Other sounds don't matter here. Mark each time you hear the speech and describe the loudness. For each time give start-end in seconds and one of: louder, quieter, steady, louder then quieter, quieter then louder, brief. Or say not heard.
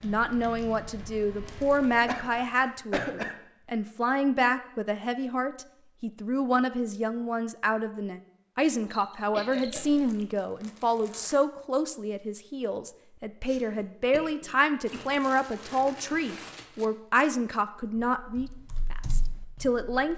0.0-20.1 steady.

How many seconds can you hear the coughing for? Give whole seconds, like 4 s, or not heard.
4 s.